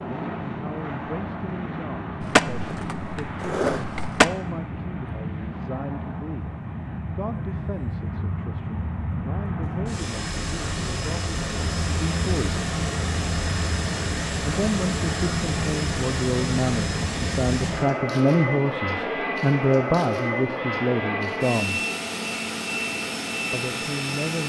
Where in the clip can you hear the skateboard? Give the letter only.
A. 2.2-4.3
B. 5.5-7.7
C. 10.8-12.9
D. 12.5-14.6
A.